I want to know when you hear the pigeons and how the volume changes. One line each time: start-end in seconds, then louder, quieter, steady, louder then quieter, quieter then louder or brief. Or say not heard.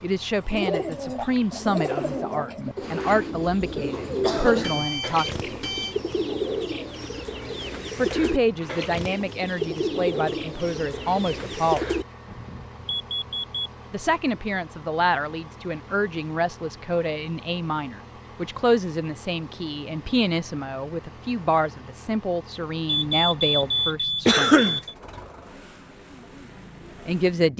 0.5-12.1 steady.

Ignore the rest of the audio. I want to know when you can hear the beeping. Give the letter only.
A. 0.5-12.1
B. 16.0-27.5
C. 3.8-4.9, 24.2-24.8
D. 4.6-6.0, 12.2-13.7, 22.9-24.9
D.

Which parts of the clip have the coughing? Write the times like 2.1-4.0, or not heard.
3.8-4.9, 24.2-24.8.